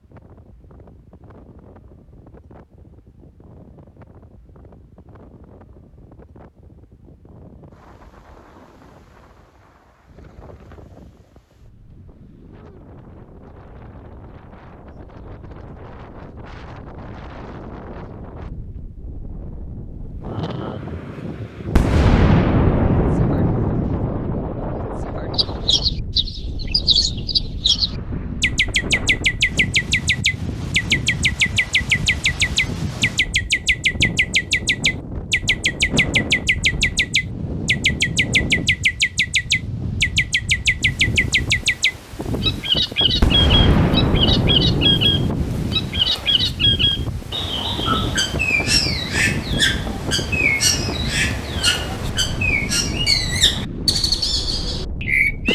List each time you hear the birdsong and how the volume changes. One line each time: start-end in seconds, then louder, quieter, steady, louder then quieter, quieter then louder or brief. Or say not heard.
25.3-55.4 steady.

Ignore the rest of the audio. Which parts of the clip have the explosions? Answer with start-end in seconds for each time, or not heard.
21.8-24.5, 43.2-46.0.